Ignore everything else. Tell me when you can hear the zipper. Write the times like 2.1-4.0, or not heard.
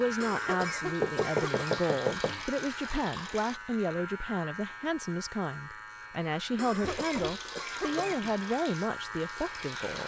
not heard.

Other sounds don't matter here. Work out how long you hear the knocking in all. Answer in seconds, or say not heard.
2 s.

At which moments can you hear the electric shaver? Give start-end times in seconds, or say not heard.
0.0-10.0.